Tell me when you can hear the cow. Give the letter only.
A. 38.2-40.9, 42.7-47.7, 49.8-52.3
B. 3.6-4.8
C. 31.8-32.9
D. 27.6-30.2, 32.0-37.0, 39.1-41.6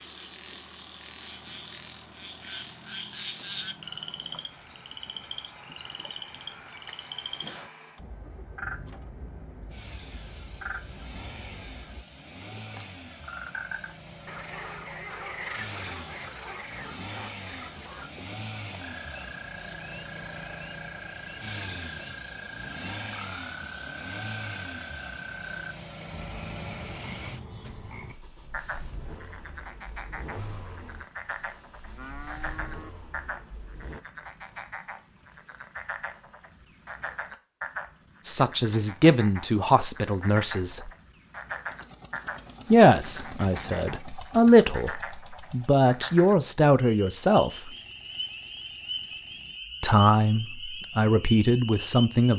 C.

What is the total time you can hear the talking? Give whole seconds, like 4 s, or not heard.
10 s.